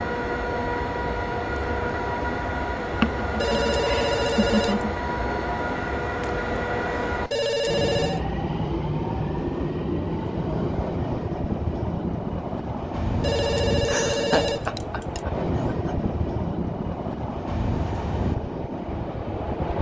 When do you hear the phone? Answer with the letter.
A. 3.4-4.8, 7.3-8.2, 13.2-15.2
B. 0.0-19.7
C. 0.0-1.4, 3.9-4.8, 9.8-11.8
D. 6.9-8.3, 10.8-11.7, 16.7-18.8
A.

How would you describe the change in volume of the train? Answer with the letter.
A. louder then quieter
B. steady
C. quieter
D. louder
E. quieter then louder
B.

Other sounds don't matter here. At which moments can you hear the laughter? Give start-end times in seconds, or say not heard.
3.0-5.0, 13.8-15.9.